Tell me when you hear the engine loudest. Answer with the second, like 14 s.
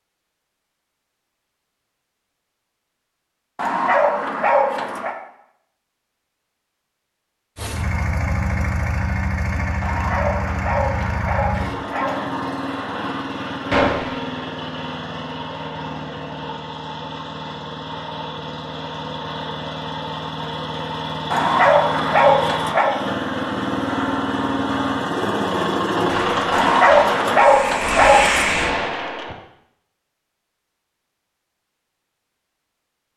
26 s.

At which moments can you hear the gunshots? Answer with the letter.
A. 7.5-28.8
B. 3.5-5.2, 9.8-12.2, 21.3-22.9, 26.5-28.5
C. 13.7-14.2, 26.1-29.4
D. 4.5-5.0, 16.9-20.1
C.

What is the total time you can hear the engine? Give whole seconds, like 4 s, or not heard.
21 s.